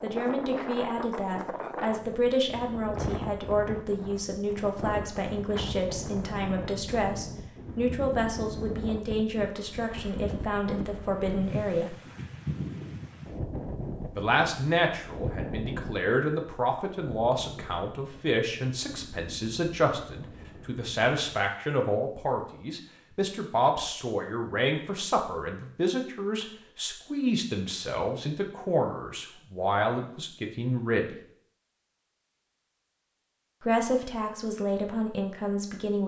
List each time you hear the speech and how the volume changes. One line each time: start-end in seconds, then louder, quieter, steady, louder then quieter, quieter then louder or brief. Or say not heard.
0.0-11.9 steady
14.2-31.1 steady
33.6-36.0 brief.